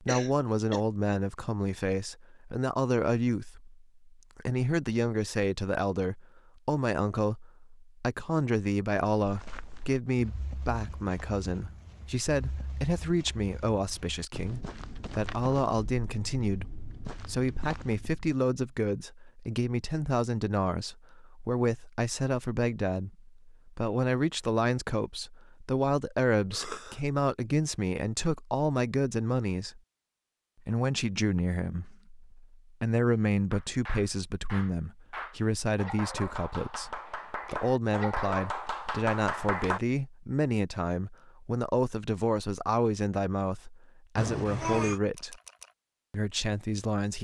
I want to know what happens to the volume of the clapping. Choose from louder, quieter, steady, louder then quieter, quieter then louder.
louder.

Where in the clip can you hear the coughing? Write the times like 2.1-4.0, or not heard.
0.1-0.8, 26.5-27.0, 44.1-45.0.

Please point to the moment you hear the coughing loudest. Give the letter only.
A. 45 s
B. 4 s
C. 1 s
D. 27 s
A.